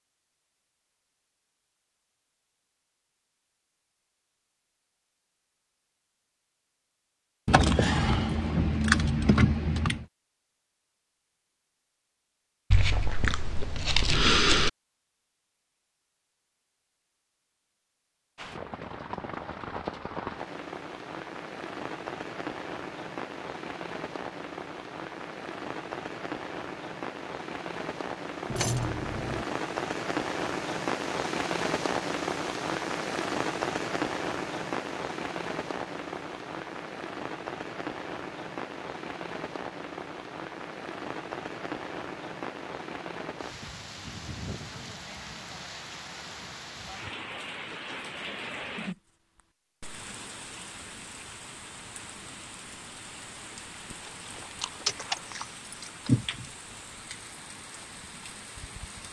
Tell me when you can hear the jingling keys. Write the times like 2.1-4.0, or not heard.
7.5-10.1, 28.4-29.4, 54.9-56.5.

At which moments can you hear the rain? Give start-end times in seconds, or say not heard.
18.4-59.0.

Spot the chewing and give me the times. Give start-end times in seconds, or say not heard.
12.7-14.7, 53.9-55.5.